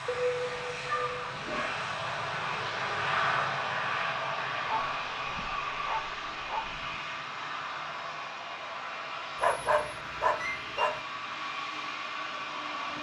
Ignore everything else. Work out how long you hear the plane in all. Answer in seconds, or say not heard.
13 s.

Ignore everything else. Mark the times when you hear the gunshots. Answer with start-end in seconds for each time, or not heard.
not heard.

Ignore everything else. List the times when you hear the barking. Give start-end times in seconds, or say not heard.
0.1-1.8, 4.7-7.0, 9.4-10.9.